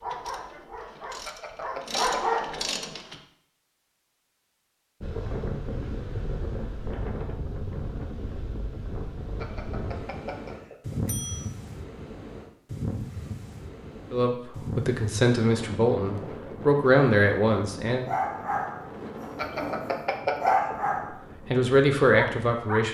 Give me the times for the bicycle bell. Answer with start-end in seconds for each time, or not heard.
1.2-2.8, 9.3-11.4, 19.4-20.8.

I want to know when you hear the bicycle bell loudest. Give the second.
20 s.